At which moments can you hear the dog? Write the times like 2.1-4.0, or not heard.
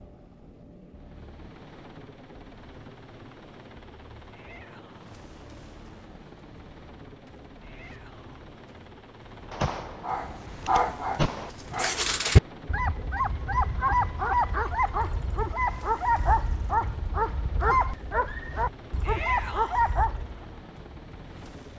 10.0-20.4.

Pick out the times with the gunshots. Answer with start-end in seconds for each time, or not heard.
9.5-11.5.